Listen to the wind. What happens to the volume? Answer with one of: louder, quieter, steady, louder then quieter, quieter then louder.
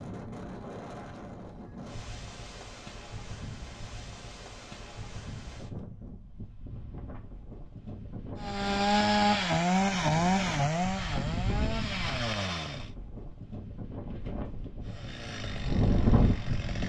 louder.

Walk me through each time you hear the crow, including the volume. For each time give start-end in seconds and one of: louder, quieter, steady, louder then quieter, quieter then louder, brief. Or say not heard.
not heard.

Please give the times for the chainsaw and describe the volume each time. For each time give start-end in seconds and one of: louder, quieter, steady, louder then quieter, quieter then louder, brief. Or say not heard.
8.3-12.9 quieter
14.8-16.8 brief.